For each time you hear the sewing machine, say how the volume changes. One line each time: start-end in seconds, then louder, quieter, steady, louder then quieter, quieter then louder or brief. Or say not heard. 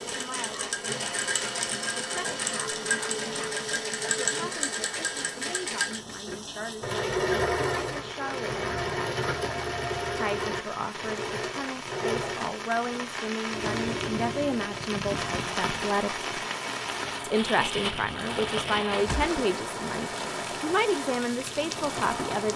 0.0-22.5 quieter.